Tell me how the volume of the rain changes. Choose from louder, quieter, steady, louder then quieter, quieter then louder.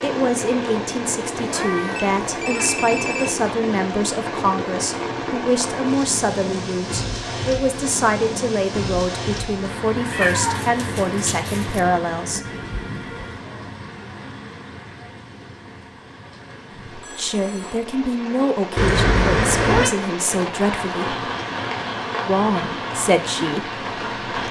quieter then louder.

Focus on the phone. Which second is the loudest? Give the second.
3 s.